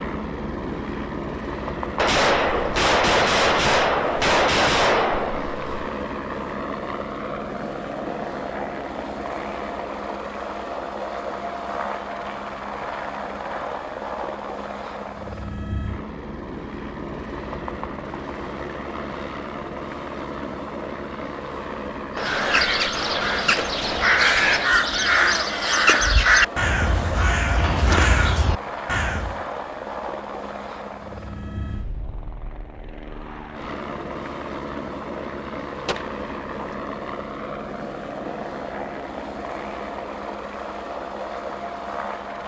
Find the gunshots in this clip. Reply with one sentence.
The gunshots can be heard from 1.9 to 5.7 s, from 22.1 to 24.8 s and from 35.9 to 36.8 s.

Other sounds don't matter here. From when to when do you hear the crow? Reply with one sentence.
The crow can be heard from 22.1 to 29.4 s.